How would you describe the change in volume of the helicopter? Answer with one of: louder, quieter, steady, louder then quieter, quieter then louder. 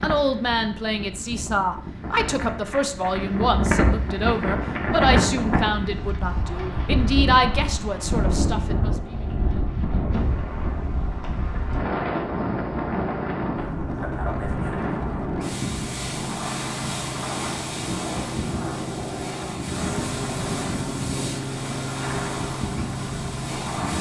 louder.